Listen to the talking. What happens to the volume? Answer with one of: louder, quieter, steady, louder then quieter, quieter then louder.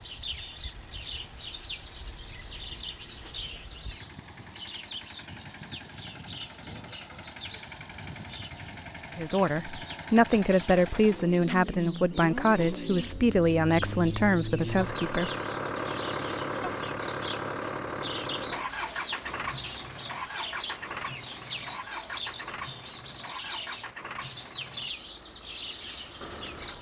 steady.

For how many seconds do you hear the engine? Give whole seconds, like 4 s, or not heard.
27 s.